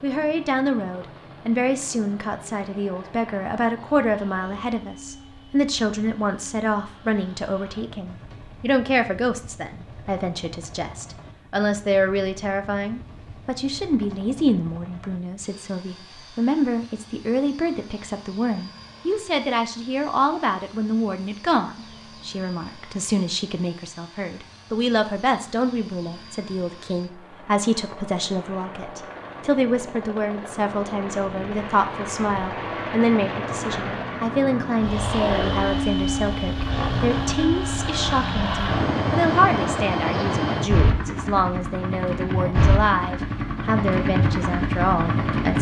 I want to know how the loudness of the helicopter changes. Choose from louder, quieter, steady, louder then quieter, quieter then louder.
louder.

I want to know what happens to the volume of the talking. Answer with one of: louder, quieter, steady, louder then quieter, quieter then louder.
steady.